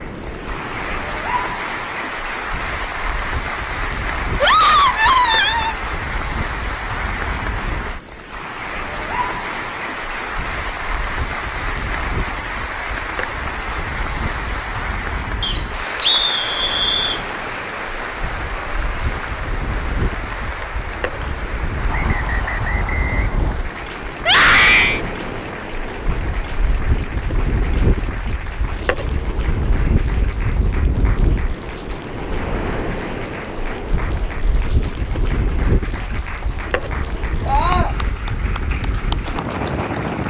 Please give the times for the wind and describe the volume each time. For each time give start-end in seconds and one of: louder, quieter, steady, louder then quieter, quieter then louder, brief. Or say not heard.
0.0-40.2 louder.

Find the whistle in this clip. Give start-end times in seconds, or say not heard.
15.4-17.2, 21.9-23.6.